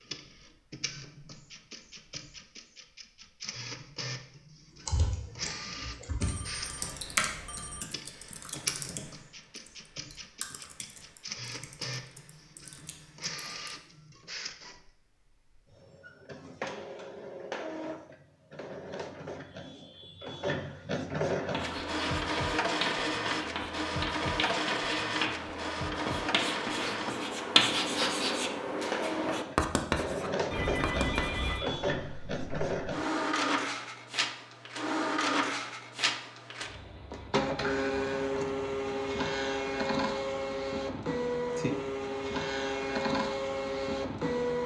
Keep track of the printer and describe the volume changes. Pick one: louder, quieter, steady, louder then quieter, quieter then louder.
louder.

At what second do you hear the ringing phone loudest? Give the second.
31 s.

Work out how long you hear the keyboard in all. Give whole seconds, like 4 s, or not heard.
9 s.